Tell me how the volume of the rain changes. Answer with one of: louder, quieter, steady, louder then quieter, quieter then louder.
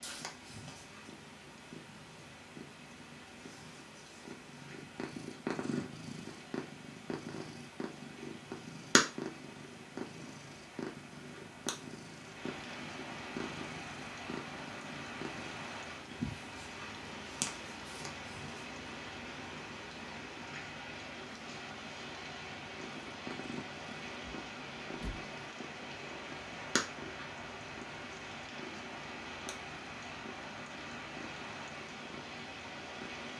louder.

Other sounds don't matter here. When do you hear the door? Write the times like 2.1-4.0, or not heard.
24.2-25.2.